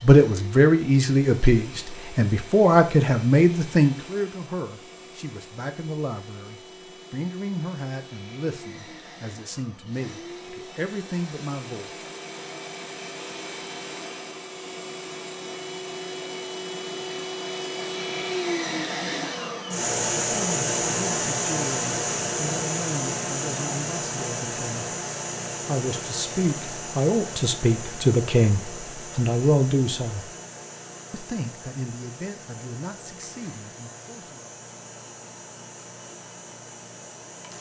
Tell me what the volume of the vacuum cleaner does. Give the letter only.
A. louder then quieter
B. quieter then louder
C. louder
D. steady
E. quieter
A.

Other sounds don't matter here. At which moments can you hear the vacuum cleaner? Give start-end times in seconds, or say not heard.
0.0-37.5.